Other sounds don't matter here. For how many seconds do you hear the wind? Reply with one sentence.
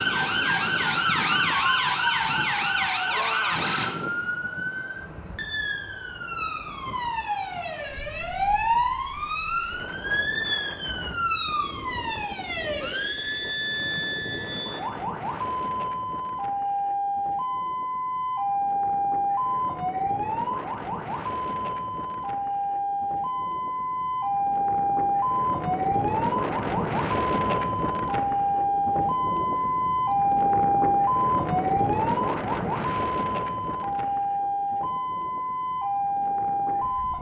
You can hear the wind for 37 seconds altogether.